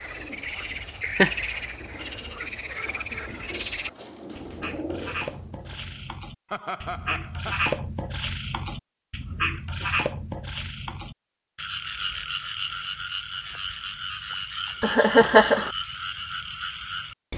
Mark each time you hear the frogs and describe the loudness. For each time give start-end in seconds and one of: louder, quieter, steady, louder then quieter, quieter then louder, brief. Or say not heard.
0.0-17.3 louder then quieter.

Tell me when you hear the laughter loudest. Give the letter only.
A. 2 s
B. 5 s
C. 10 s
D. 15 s
D.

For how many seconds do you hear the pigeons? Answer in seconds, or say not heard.
6 s.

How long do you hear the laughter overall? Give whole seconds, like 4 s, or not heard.
3 s.